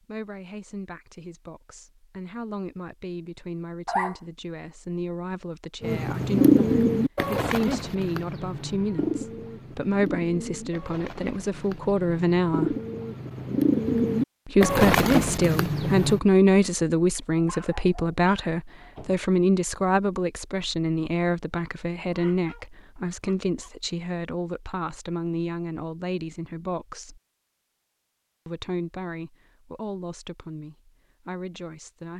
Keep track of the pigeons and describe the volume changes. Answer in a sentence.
The loudness of the pigeons goes down, then up.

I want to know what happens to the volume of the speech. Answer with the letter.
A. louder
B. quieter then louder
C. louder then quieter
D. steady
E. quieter
C.